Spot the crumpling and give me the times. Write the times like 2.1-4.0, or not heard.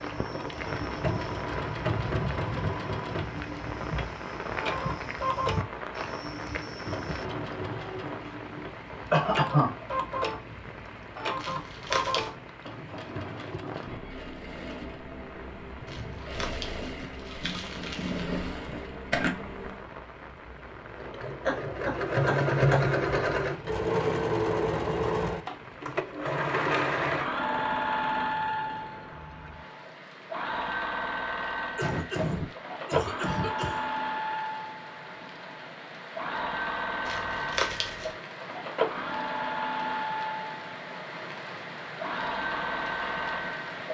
11.3-12.3, 15.8-18.3, 37.0-38.1.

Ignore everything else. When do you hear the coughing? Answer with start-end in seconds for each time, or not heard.
9.1-9.7, 21.4-23.7, 31.8-33.9.